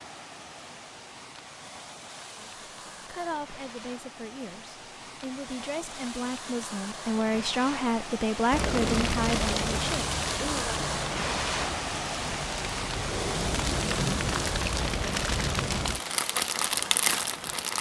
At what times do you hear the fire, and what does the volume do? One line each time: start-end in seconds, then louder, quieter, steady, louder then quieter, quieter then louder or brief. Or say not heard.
8.5-17.7 quieter then louder.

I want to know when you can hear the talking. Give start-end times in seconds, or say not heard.
2.4-10.8.